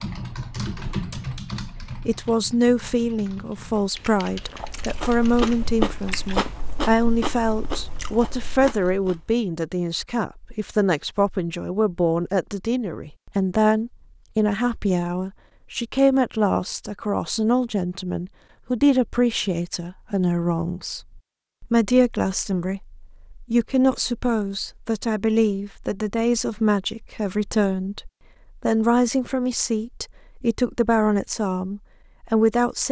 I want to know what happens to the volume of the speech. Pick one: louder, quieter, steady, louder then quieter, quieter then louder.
steady.